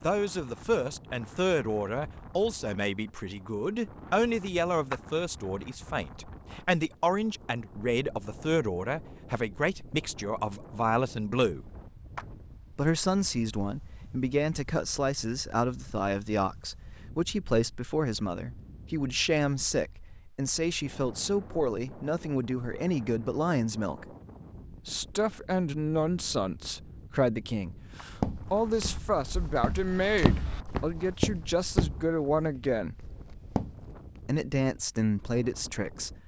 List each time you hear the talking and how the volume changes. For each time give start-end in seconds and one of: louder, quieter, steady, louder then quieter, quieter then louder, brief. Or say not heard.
0.0-11.7 steady
12.8-24.1 steady
24.9-33.0 steady
34.2-36.1 brief.